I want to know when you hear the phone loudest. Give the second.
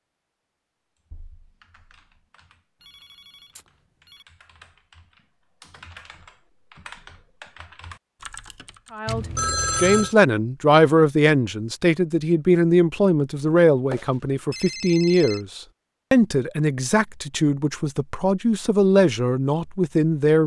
10 s.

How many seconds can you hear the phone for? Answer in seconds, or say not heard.
4 s.